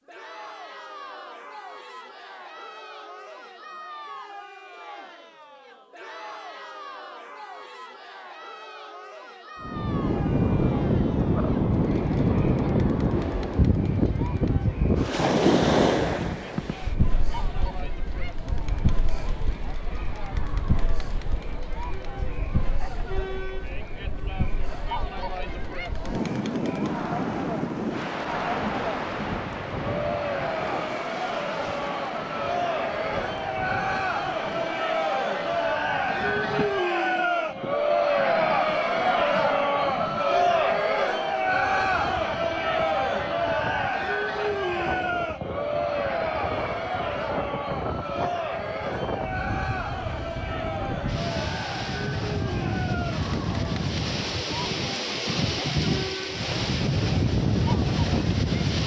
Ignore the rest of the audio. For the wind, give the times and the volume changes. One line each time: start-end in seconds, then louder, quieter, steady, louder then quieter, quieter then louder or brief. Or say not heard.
9.6-58.8 quieter then louder.